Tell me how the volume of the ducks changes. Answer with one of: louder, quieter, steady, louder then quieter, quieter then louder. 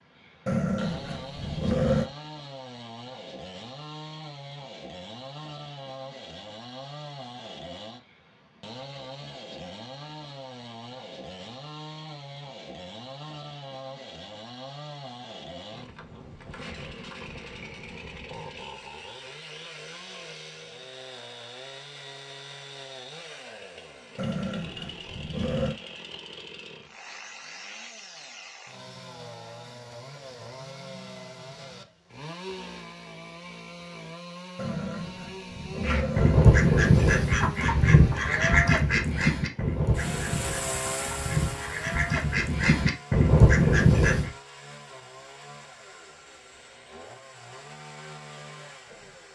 quieter then louder.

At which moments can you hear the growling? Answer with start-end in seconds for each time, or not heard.
0.5-2.1, 24.1-25.8, 34.5-36.5.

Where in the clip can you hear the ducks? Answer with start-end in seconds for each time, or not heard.
35.8-44.3.